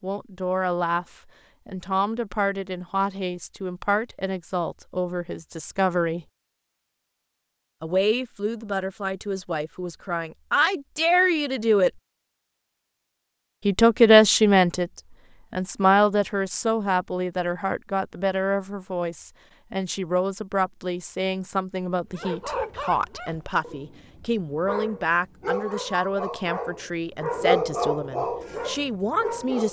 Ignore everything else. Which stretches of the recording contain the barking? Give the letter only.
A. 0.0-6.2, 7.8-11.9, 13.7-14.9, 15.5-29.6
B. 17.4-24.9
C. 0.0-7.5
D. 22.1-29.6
D.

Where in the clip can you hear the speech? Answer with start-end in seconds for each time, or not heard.
0.0-6.2, 7.8-11.9, 13.7-14.9, 15.5-29.6.